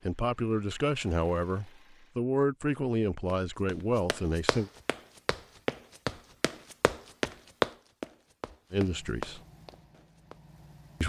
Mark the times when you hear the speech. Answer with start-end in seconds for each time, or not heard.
0.1-4.7, 8.7-9.4.